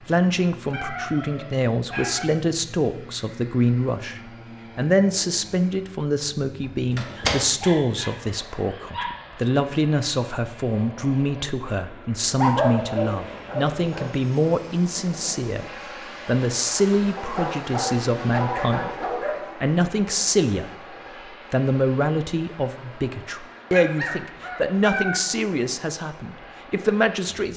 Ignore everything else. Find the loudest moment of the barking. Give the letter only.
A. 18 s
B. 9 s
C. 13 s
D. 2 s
C.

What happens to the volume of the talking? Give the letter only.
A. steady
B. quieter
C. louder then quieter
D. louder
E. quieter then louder
A.